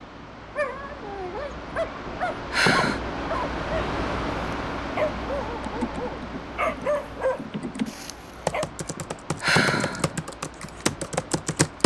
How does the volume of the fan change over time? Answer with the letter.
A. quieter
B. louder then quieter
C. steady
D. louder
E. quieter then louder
B.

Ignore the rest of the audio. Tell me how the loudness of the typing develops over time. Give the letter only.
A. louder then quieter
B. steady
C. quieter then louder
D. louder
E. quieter
D.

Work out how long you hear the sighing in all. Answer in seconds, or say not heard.
2 s.